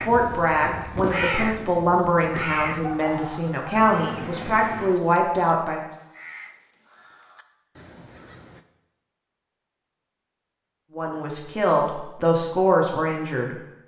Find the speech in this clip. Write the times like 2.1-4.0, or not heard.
0.0-5.8, 10.9-13.6.